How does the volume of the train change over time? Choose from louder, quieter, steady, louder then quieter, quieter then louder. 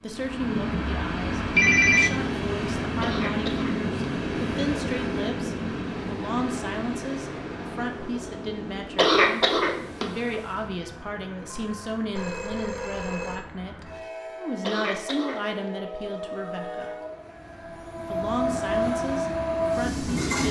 quieter then louder.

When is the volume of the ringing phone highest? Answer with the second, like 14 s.
2 s.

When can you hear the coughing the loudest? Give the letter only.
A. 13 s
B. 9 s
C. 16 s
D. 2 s
B.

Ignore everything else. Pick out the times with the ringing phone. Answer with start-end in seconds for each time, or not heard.
1.6-2.2, 11.5-13.5.